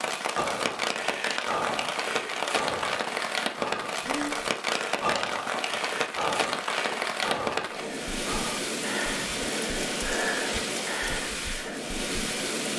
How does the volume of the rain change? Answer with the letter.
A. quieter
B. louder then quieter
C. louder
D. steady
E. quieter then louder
D.